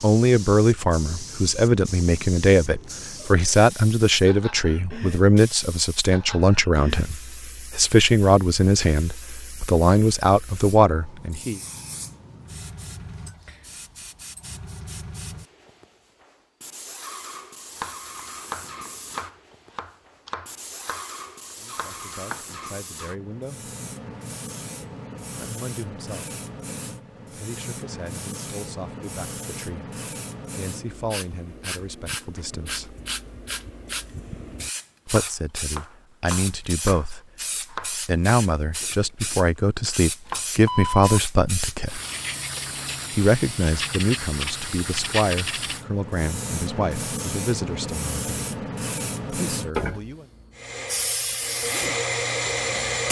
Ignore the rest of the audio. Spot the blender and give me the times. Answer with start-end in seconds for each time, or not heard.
50.5-53.0.